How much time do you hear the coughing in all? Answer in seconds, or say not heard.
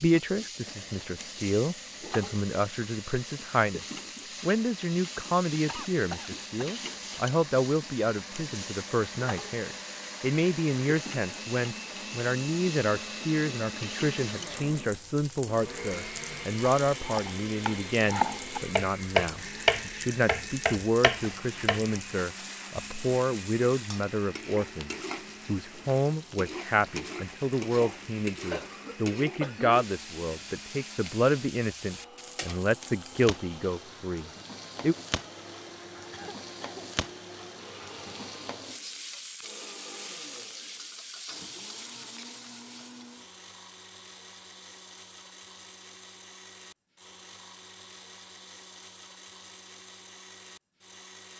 3 s.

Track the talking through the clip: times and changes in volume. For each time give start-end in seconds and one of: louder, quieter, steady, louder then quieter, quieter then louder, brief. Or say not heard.
0.0-35.0 steady.